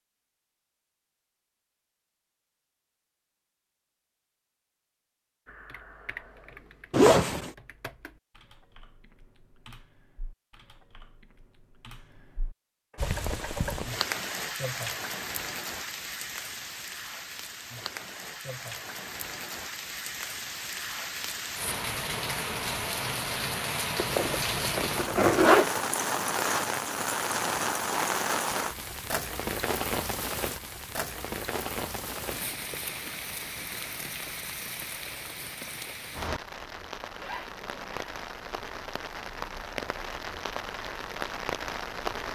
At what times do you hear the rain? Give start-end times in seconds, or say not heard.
12.9-42.2.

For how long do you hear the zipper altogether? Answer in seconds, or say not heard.
3 s.